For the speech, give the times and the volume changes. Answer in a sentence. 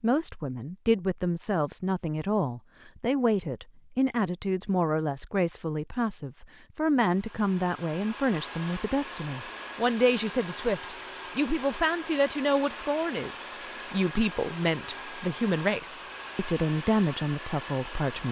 The speech can be heard from 0.0 to 18.2 s, at a steady volume.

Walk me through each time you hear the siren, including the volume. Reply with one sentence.
The siren can't be heard in this clip.